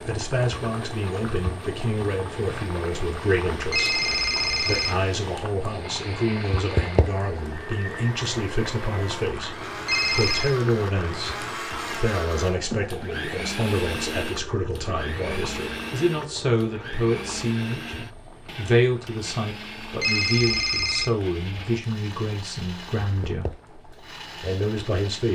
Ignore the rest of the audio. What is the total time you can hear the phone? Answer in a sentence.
You can hear the phone for 3 seconds altogether.